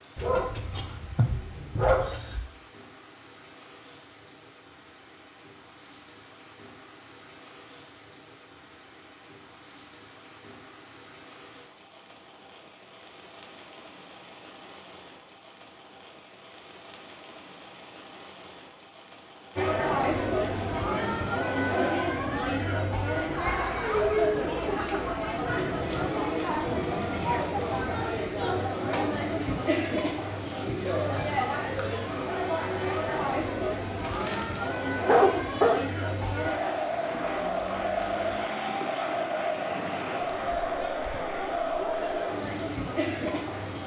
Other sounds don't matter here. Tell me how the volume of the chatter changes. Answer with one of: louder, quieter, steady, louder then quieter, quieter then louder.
steady.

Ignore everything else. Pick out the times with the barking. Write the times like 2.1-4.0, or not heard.
0.1-2.4, 34.0-35.8.